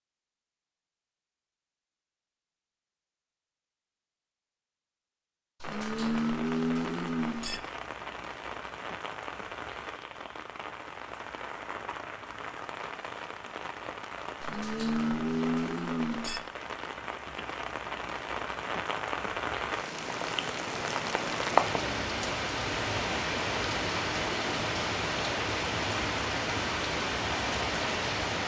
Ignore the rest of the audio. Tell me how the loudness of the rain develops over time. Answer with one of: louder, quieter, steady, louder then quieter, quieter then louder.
louder.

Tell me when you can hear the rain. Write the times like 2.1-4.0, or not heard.
5.6-28.4.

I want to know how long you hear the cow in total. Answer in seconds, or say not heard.
4 s.